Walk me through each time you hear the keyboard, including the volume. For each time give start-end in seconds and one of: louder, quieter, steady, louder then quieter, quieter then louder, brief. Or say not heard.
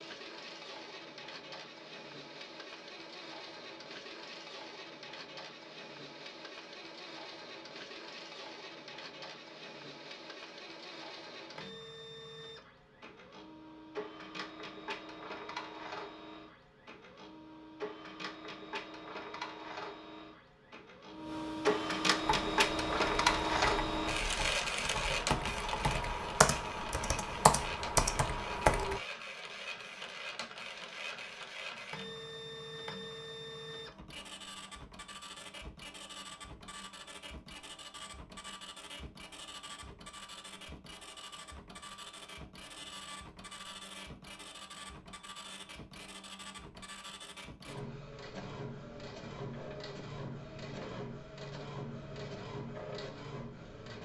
22.2-29.0 louder.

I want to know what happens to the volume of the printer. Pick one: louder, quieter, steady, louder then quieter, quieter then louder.
louder then quieter.